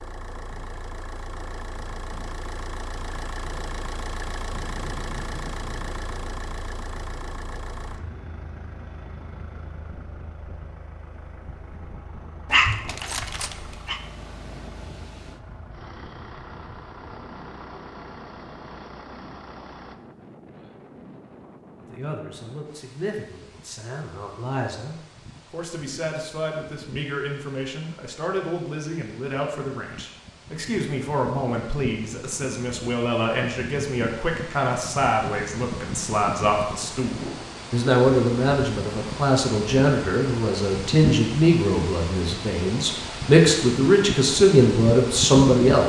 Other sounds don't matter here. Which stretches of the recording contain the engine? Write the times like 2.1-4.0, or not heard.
0.0-19.9.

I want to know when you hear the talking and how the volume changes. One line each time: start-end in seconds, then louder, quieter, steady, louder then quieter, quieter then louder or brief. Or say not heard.
21.9-45.8 louder.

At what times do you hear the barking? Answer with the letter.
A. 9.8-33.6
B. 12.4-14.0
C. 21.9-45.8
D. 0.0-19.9
B.